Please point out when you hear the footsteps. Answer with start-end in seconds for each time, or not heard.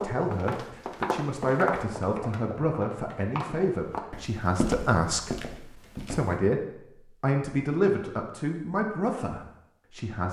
0.0-6.3.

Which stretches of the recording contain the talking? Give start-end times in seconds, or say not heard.
0.0-5.3, 6.0-10.2.